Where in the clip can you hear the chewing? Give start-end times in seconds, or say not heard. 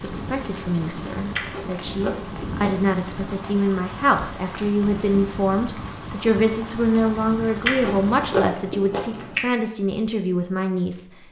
1.3-2.7, 7.7-9.4.